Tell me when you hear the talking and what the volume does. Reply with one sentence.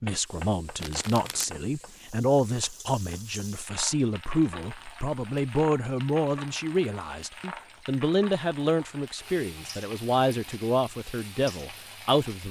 The talking can be heard from 0.0 to 12.4 s, at a steady volume.